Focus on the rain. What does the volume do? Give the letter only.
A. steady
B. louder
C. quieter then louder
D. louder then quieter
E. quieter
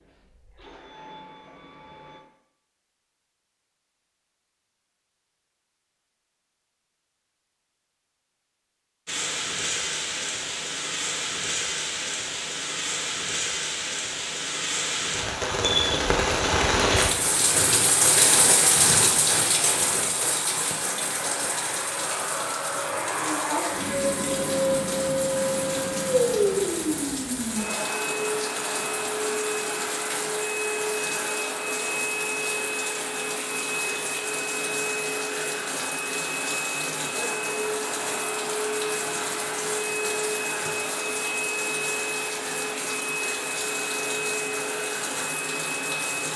E.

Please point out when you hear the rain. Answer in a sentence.
You can hear the rain from 9.1 to 46.3 s.